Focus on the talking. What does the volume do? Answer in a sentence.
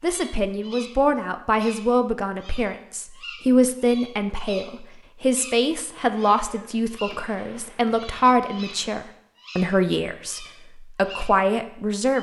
The loudness of the talking stays about the same.